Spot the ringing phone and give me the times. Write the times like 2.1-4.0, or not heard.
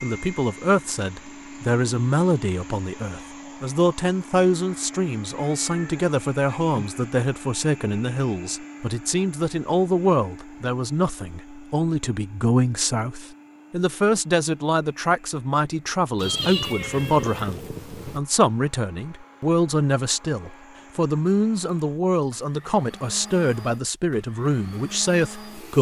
not heard.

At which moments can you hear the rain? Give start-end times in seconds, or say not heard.
not heard.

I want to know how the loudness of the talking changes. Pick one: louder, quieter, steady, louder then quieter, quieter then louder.
steady.